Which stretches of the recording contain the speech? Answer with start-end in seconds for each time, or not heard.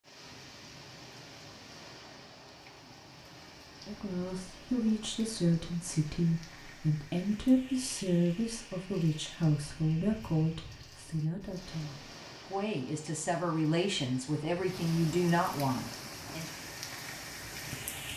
3.9-16.4.